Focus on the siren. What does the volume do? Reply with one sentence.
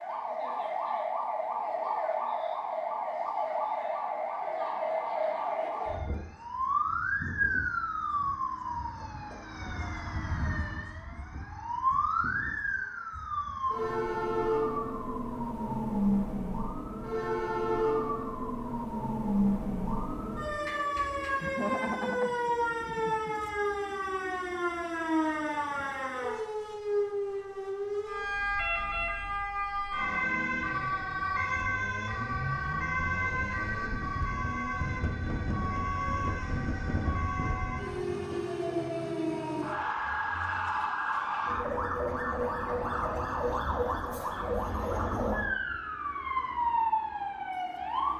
The loudness of the siren stays about the same.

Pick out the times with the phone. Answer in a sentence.
You can't hear the phone here.